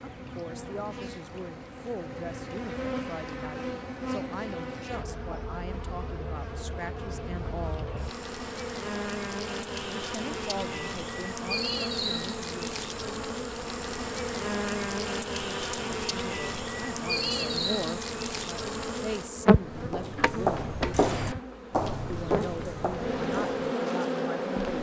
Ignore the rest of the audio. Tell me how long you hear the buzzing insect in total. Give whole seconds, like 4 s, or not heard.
25 s.